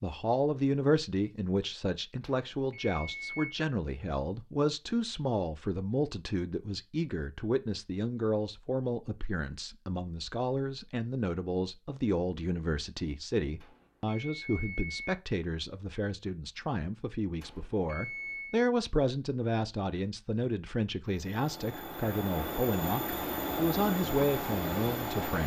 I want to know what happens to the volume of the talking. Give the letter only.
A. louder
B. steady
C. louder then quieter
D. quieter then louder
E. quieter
B.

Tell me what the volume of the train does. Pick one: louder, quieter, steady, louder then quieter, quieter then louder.
louder.